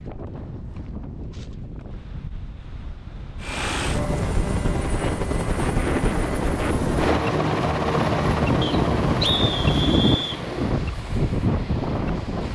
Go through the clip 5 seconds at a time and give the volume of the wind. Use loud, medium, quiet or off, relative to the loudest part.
quiet, loud, loud.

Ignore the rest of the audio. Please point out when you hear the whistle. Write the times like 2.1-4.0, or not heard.
8.6-10.4.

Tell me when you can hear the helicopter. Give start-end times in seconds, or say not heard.
3.4-12.4.